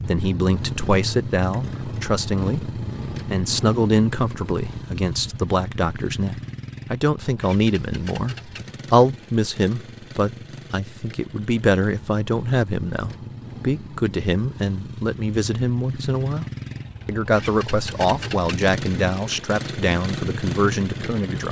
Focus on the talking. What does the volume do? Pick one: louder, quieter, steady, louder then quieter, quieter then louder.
steady.